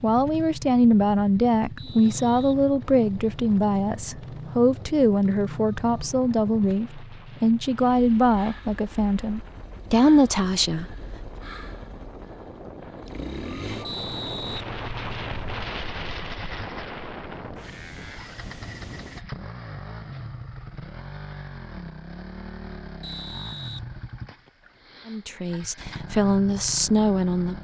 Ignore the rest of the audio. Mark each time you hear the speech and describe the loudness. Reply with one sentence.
You can hear the speech from 0.0 to 10.9 s, at a steady volume; and briefly from 25.1 to 27.6 s.